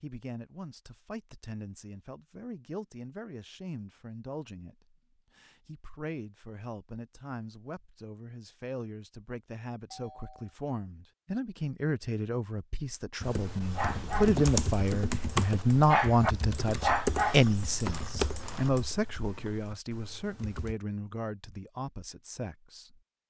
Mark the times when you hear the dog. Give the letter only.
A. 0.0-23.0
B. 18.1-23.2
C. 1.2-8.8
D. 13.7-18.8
D.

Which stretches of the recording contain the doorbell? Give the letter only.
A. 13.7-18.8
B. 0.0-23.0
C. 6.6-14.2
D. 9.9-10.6
D.